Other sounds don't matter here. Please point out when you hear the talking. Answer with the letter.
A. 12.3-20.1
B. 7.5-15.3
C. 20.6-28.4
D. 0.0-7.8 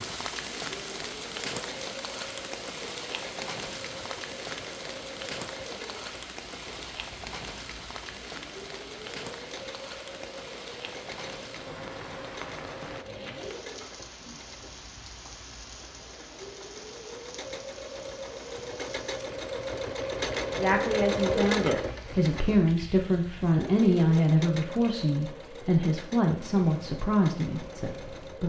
C.